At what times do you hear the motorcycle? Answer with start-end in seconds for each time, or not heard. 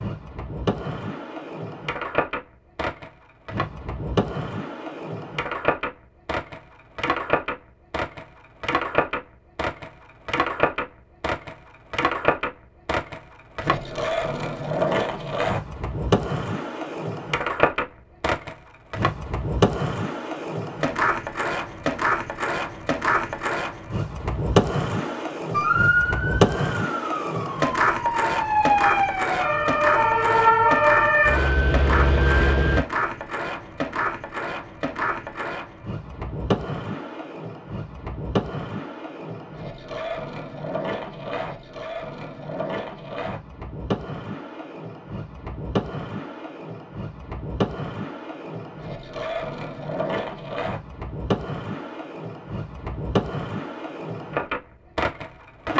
not heard.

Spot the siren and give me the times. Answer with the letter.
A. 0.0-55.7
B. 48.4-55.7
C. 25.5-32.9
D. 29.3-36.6
C.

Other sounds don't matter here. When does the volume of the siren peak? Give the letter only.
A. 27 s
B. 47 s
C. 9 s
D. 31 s
D.